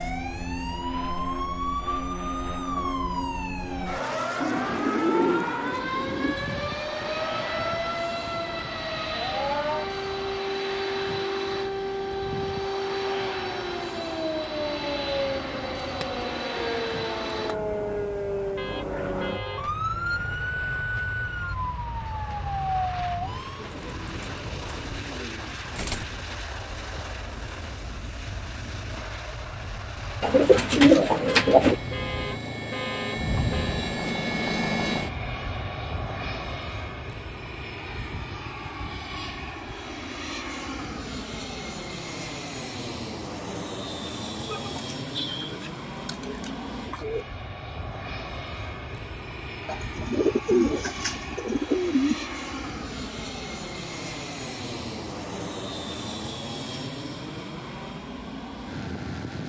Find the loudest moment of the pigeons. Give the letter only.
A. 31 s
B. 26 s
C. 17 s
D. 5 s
A.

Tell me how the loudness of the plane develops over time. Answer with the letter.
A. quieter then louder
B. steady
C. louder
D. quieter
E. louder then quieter
B.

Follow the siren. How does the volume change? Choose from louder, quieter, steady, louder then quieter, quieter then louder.
steady.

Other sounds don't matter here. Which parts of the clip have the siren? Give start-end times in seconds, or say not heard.
0.0-23.7.